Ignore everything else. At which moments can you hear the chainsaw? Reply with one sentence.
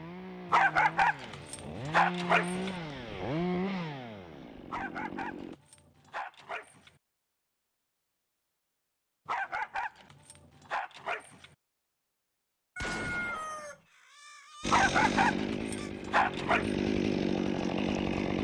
You can hear the chainsaw from 0.0 to 5.5 s and from 14.6 to 18.3 s.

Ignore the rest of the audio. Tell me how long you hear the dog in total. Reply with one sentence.
The dog can be heard for 9 seconds in total.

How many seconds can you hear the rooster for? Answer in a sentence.
The rooster can be heard for 3 seconds in total.